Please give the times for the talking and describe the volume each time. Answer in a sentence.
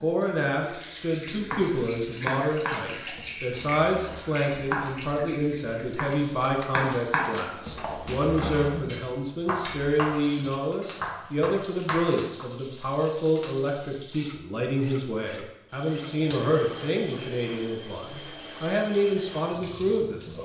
The talking can be heard from 0.0 to 20.3 s, at a steady volume.